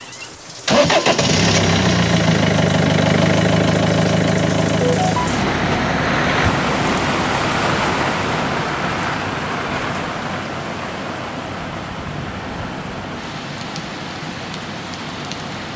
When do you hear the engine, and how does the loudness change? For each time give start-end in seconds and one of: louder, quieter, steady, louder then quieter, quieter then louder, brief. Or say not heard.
0.0-15.7 quieter.